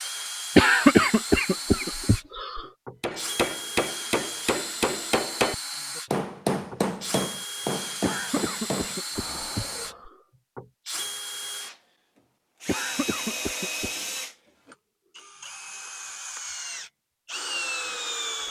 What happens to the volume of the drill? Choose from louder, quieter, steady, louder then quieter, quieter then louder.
steady.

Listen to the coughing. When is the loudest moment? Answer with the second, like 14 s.
1 s.